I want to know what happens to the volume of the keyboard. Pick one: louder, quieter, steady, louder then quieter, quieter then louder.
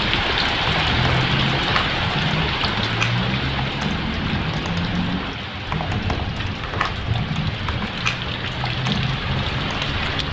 steady.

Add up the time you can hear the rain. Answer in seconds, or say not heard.
10 s.